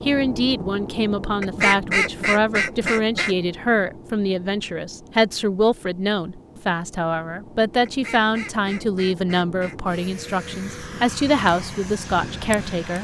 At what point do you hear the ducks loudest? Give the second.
2 s.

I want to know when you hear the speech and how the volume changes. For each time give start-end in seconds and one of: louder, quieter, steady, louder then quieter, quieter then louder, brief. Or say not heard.
0.0-12.9 steady.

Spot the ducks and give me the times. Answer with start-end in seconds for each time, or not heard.
1.4-3.4, 7.8-9.8.